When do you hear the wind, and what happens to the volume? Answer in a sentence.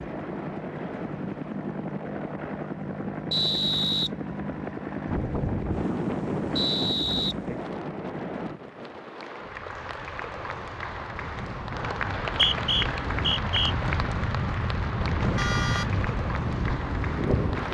The wind can be heard from 5.0 to 17.7 s, getting quieter then louder.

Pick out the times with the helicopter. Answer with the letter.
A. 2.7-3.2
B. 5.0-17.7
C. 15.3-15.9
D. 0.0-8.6
D.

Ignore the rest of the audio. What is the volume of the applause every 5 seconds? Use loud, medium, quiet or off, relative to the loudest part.
off, medium, loud, loud.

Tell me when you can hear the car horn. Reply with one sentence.
You can hear the car horn from 15.3 to 15.9 s.